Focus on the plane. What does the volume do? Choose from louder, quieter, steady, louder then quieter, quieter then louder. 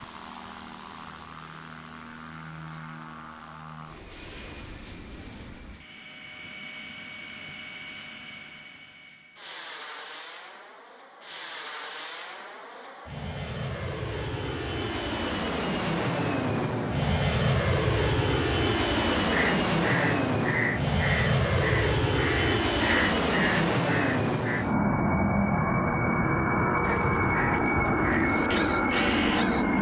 louder.